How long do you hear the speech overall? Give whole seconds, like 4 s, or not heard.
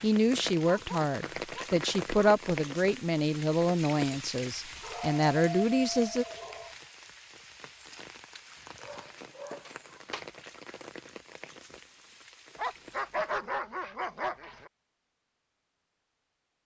6 s.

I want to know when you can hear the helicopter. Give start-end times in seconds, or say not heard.
not heard.